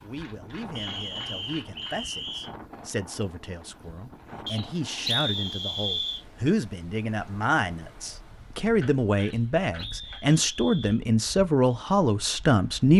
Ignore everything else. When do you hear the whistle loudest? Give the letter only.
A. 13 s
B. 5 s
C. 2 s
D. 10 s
B.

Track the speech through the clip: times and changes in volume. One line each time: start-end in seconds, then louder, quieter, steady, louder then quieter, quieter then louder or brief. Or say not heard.
0.0-12.9 louder.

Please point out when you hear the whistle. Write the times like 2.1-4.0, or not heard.
0.8-2.5, 4.5-6.2, 9.2-11.0.